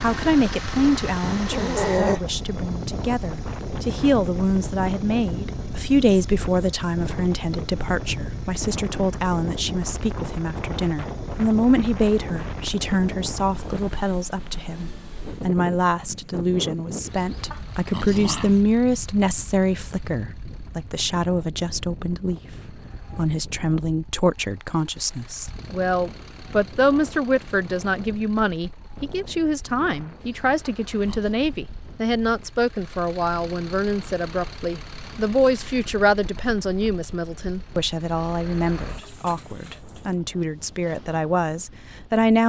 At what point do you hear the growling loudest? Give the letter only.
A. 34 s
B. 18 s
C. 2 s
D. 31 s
C.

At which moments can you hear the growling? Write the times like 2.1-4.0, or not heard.
1.2-2.2, 17.1-18.6, 30.2-31.4.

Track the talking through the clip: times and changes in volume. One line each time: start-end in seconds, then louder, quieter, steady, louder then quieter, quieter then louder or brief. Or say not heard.
0.0-42.4 steady.